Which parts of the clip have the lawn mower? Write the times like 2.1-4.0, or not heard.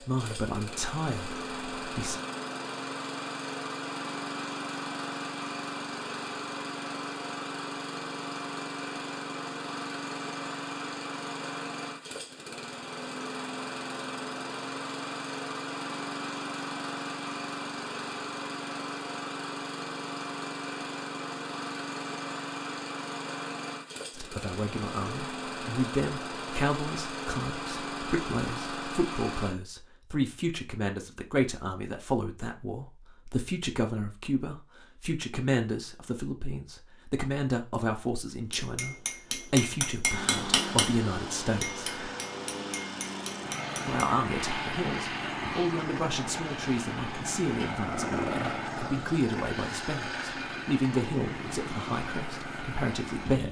0.0-29.6, 40.0-53.4.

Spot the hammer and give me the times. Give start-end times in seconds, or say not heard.
38.5-44.1.